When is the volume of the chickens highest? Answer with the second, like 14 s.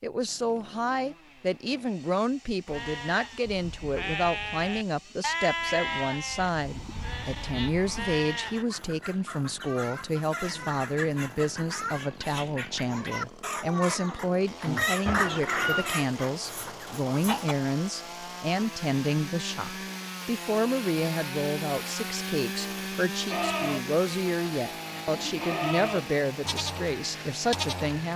15 s.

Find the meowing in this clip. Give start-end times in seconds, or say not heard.
15.1-16.1.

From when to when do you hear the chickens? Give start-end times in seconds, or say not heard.
8.4-17.6.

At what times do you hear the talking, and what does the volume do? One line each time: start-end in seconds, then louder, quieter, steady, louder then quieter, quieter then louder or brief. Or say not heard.
0.0-28.1 steady.